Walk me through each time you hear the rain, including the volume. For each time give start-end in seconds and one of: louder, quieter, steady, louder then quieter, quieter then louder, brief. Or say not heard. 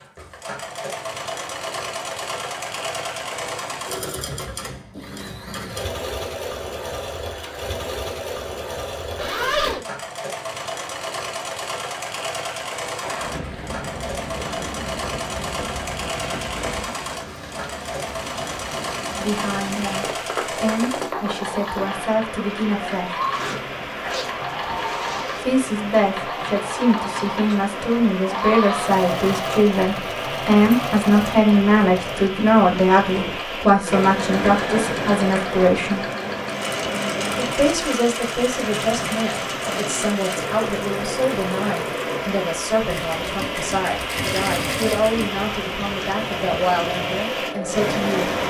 13.0-48.4 louder.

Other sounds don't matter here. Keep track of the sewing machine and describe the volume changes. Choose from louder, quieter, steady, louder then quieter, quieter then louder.
steady.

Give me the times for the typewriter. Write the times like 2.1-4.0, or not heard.
not heard.